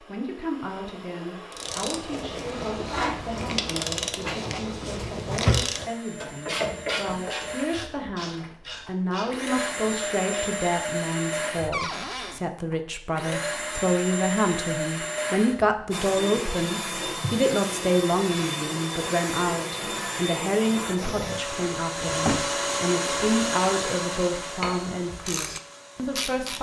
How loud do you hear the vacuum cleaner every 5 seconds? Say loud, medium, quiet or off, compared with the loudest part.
quiet, medium, loud, loud, loud, quiet.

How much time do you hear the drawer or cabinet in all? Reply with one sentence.
You can hear the drawer or cabinet for 4 seconds altogether.